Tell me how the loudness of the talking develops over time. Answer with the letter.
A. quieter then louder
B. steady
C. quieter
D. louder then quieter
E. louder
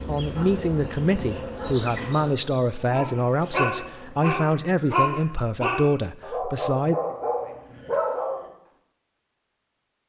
B.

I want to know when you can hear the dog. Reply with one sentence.
You can hear the dog from 2.9 to 8.5 s.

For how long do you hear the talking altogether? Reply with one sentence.
The talking can be heard for 7 seconds in total.